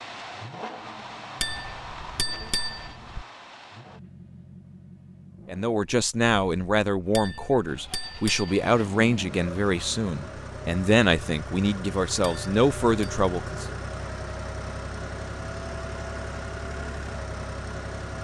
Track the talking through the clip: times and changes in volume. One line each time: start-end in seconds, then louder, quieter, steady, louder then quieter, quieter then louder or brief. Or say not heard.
5.5-13.8 steady.